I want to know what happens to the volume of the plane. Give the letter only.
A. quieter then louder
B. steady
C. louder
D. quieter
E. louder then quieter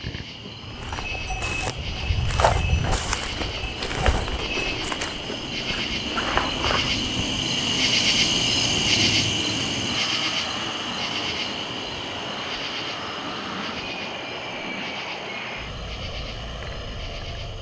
C.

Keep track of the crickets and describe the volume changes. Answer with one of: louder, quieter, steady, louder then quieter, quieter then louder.
louder then quieter.